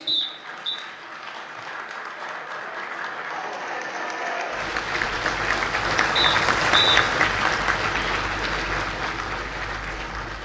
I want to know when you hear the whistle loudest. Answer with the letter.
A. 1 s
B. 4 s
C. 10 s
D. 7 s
D.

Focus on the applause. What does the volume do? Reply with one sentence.
The loudness of the applause goes up, then down.